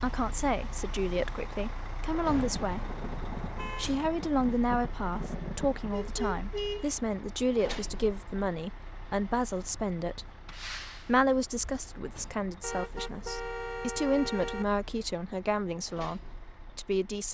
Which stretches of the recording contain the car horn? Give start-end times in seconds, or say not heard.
2.8-3.9, 5.9-6.9, 12.6-14.7.